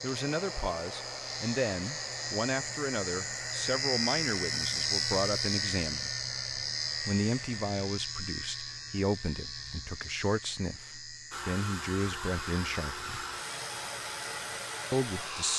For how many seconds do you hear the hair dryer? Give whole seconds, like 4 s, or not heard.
12 s.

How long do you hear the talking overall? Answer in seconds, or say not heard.
13 s.